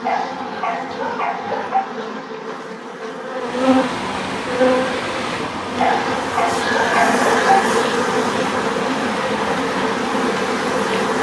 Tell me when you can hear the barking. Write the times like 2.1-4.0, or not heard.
0.0-1.9, 5.8-7.6.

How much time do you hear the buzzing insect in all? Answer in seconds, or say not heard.
11 s.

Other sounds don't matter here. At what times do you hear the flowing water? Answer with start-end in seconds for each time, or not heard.
3.4-11.1.